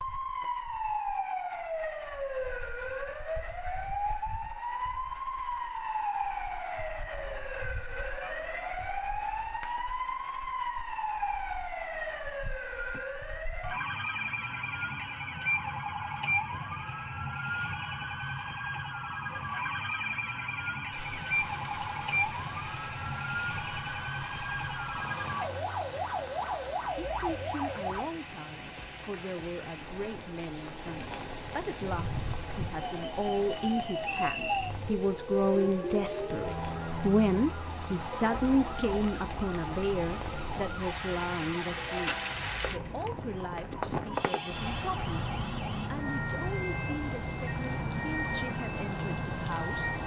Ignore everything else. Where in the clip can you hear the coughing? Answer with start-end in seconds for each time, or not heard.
not heard.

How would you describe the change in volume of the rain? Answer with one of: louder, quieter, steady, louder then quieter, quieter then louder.
louder.